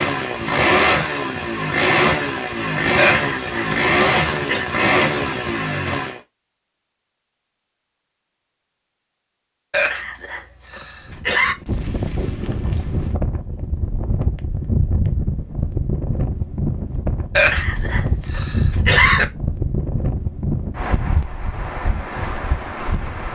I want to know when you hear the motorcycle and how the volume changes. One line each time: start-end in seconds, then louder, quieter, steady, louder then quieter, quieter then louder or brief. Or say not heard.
0.0-6.2 steady.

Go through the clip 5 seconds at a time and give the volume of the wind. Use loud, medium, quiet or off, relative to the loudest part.
off, off, loud, loud, loud.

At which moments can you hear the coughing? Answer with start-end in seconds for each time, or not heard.
3.0-4.7, 9.7-11.6, 17.4-19.2.